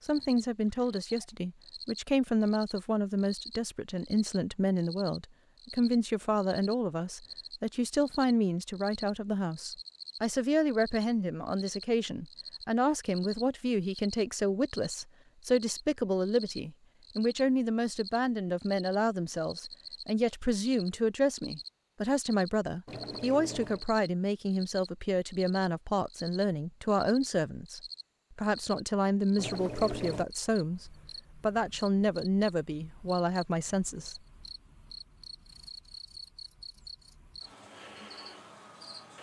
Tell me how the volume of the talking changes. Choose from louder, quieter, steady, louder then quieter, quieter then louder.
steady.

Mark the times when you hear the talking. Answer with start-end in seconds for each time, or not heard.
0.1-34.1.